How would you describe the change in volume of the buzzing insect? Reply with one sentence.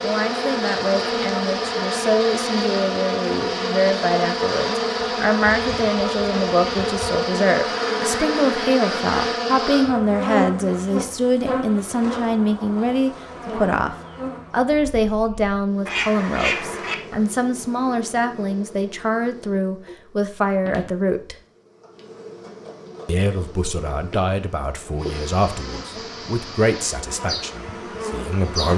The volume of the buzzing insect goes down, then up.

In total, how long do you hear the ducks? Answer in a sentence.
You can hear the ducks for 3 seconds altogether.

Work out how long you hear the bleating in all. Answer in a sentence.
The bleating can't be heard in this clip.